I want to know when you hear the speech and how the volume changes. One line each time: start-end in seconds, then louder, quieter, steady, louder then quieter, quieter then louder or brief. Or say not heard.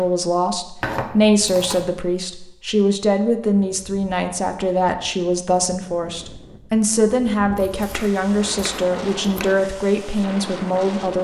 0.0-11.2 steady.